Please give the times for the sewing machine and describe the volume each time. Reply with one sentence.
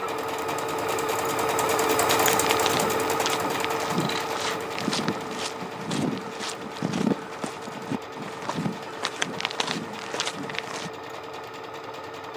You can hear the sewing machine from 0.0 to 12.3 s, getting quieter.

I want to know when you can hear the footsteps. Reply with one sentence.
The footsteps can be heard from 2.0 to 10.9 s.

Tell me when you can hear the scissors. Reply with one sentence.
The scissors can be heard from 4.0 to 4.7 s.